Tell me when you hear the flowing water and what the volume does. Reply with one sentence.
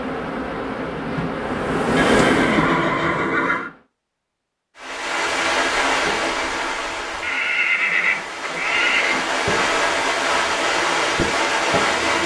The flowing water can be heard from 4.8 to 12.2 s, getting quieter then louder.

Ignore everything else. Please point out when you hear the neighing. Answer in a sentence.
You can hear the neighing from 1.9 to 3.7 s and from 7.2 to 9.2 s.